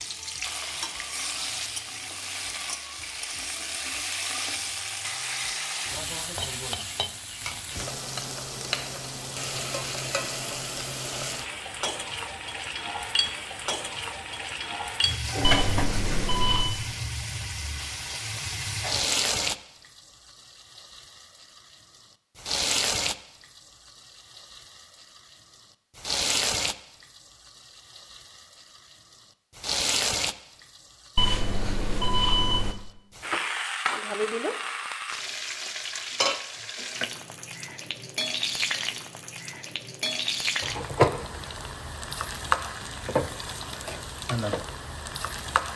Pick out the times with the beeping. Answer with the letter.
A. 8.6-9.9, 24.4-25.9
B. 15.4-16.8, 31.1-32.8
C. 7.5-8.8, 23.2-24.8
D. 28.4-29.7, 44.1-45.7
B.